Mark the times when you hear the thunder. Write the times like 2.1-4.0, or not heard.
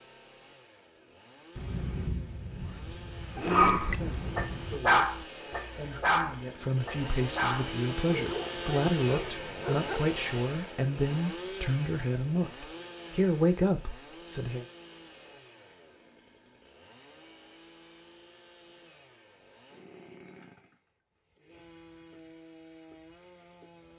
1.6-4.8.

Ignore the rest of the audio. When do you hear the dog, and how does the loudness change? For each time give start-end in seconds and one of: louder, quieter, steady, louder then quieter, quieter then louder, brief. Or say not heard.
3.4-10.2 quieter.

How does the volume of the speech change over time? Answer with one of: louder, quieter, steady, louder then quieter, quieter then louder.
louder.